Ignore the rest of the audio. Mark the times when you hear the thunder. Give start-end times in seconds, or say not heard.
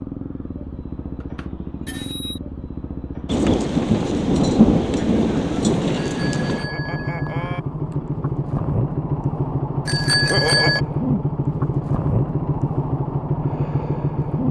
3.2-6.7.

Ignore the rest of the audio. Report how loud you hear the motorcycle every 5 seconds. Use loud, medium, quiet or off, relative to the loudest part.
medium, loud, loud.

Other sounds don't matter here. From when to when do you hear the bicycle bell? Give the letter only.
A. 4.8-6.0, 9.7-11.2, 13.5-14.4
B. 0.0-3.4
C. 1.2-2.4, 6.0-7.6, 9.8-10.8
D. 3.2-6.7
C.